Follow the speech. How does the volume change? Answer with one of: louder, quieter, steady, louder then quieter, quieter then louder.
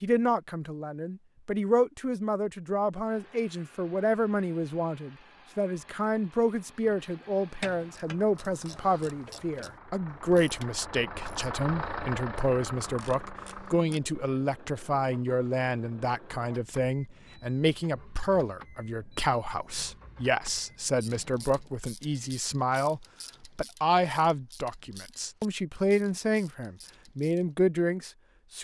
steady.